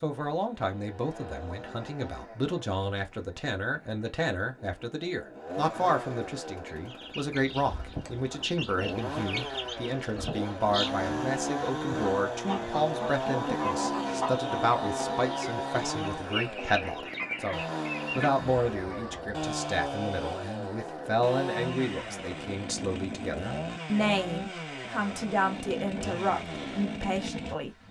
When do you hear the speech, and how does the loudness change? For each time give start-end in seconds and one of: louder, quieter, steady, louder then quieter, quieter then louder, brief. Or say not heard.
0.0-27.7 steady.